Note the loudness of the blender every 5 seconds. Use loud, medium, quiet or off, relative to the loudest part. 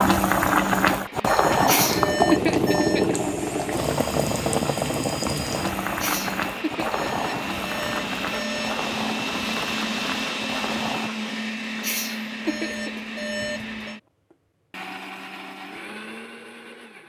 medium, loud, loud, medium.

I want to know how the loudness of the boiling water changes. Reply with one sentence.
The volume of the boiling water goes down.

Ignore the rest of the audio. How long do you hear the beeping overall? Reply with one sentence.
You can hear the beeping for 5 seconds altogether.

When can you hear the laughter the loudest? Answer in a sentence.
The volume of the laughter peaks at 2 seconds.